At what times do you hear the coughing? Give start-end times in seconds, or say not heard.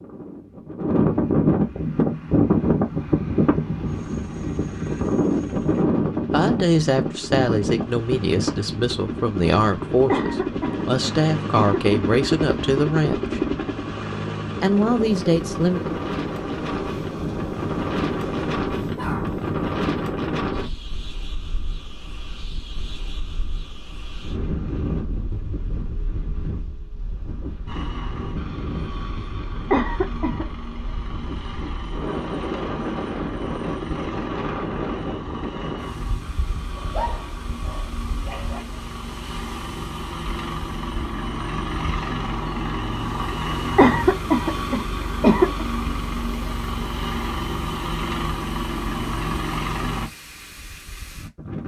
10.1-12.0, 29.7-30.4, 43.8-45.6.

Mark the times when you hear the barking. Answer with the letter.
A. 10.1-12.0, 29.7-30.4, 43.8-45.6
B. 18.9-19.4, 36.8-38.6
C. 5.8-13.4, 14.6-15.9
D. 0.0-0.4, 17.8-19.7
B.